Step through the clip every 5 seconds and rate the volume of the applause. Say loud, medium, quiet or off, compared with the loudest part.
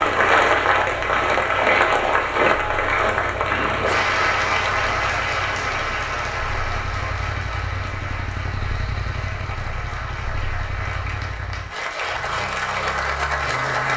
loud, medium, medium.